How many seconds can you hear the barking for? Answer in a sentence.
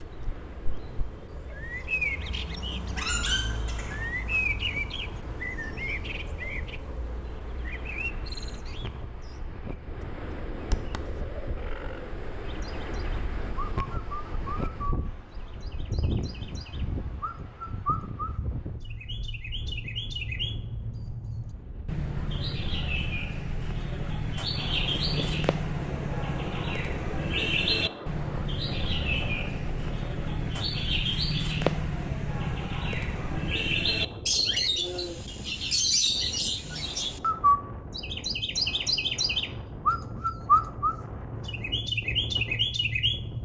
The barking can be heard for 2 seconds in total.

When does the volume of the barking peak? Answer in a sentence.
The loudest moment of the barking is at 3 seconds.